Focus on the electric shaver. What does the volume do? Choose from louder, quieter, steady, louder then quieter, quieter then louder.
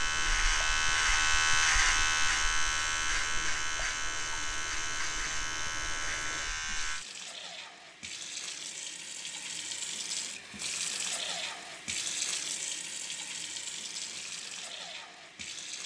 quieter.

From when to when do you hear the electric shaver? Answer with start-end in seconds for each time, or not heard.
0.0-7.0.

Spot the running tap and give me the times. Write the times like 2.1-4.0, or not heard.
0.0-15.8.